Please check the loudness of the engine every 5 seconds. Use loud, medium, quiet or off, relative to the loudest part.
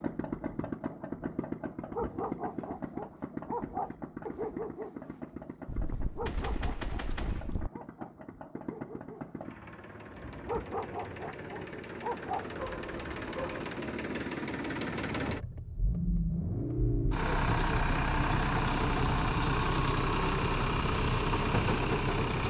medium, quiet, medium, loud, loud.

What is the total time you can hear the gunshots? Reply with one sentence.
The gunshots can be heard for 2 seconds in total.